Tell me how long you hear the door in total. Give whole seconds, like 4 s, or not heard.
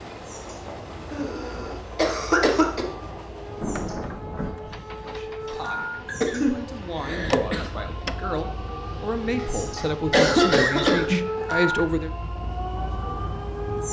2 s.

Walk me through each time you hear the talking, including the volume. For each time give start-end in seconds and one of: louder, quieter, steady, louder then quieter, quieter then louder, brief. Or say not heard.
5.0-12.1 louder.